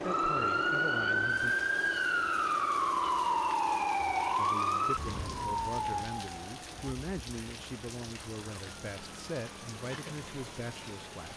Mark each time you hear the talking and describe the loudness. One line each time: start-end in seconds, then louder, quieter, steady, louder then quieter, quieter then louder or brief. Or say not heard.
0.0-1.6 brief
4.3-11.3 steady.